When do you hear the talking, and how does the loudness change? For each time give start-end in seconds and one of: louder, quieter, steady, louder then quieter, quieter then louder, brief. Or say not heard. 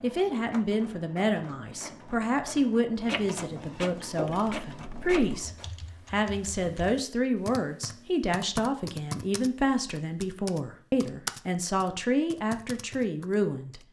0.0-13.8 steady.